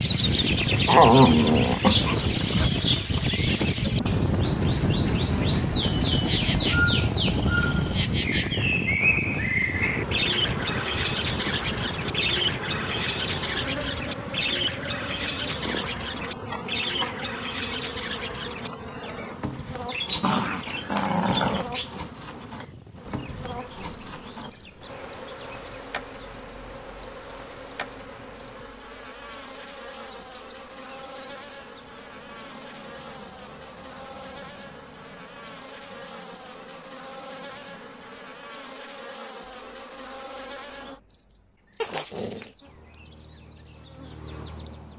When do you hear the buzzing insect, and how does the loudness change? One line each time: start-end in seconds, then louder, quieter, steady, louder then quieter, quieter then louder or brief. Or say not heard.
3.5-41.0 quieter
42.6-44.9 brief.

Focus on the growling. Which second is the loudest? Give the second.
1 s.